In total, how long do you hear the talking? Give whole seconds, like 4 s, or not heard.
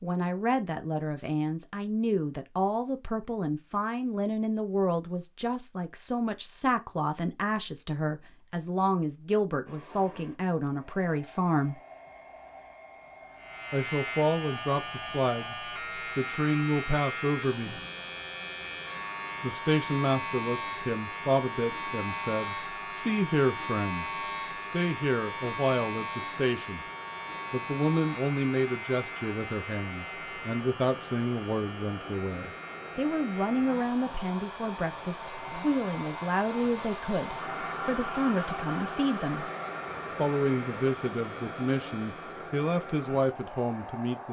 39 s.